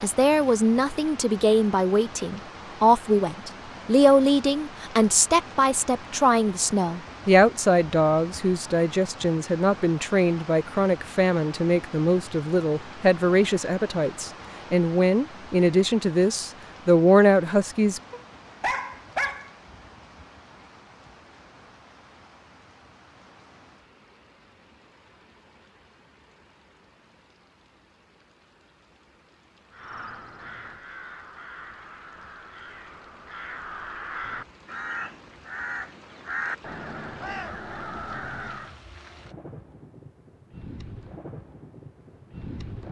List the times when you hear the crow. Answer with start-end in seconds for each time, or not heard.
29.7-38.8.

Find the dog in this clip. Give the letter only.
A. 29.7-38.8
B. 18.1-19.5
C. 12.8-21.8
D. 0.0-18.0
B.